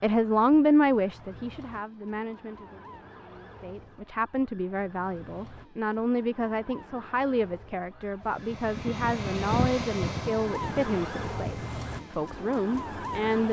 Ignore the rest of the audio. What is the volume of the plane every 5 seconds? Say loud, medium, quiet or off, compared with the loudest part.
off, loud, medium.